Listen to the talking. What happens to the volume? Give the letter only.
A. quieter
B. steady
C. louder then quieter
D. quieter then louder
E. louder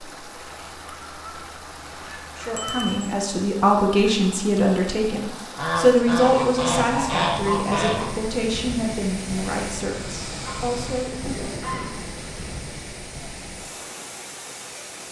A.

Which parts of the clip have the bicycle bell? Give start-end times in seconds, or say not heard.
2.5-3.1.